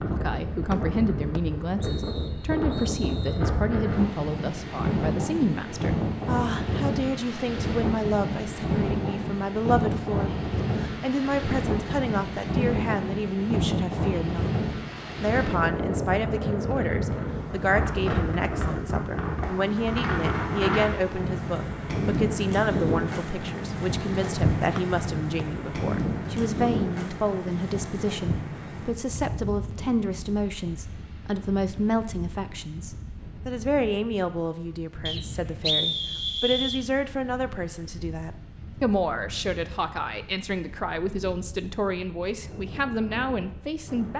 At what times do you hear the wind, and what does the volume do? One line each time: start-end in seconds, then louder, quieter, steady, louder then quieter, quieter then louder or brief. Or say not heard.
0.0-44.1 quieter.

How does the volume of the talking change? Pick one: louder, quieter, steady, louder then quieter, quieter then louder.
steady.